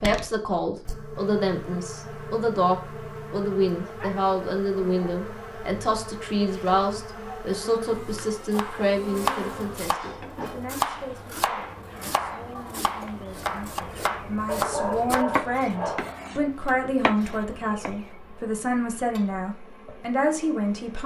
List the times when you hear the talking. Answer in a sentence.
You can hear the talking from 0.0 to 21.0 s.